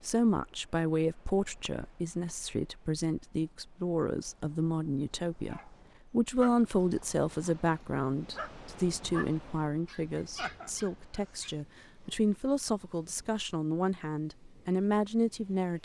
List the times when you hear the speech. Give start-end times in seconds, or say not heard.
0.0-15.7.